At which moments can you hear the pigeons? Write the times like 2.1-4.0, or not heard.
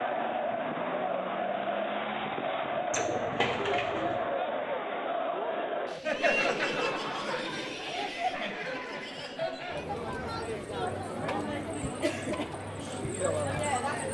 2.9-4.2.